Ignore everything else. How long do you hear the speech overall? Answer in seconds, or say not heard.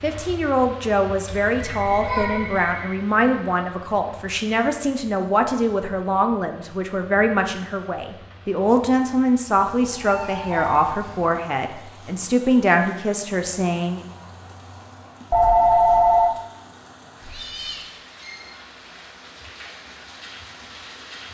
14 s.